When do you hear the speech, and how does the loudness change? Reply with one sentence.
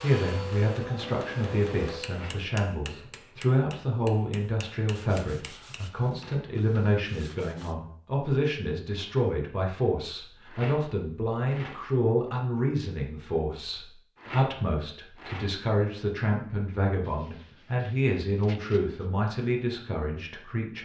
You can hear the speech from 0.0 to 20.8 s, at a steady volume.